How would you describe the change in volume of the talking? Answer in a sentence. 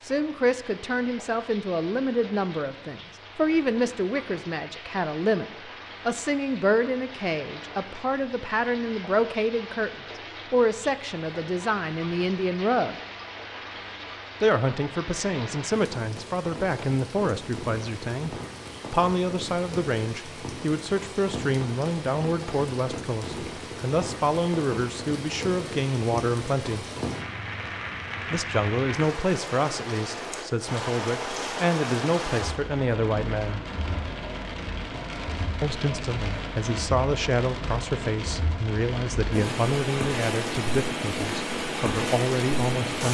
The loudness of the talking stays about the same.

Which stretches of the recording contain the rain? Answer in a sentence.
The rain can be heard from 0.0 to 43.0 s.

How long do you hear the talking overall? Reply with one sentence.
The talking can be heard for 38 seconds in total.